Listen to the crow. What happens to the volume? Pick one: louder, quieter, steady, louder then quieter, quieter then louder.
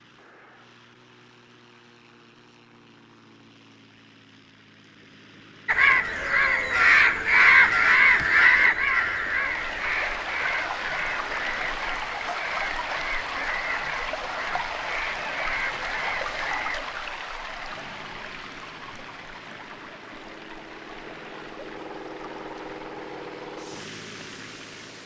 quieter.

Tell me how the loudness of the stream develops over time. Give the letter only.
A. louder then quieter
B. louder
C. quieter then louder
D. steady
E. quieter
E.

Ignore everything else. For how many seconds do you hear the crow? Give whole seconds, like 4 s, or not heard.
11 s.